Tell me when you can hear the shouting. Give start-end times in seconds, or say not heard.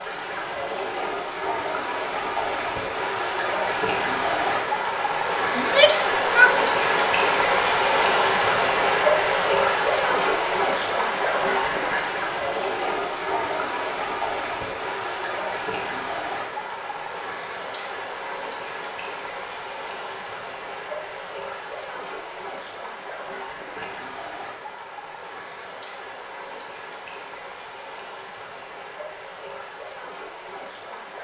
5.5-6.5.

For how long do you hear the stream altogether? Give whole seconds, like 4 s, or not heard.
31 s.